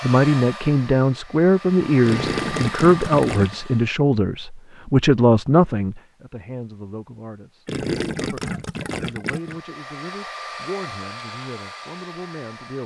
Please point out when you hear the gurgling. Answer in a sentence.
The gurgling can be heard from 2.0 to 3.6 s and from 7.7 to 9.6 s.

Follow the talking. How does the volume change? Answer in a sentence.
The loudness of the talking goes down.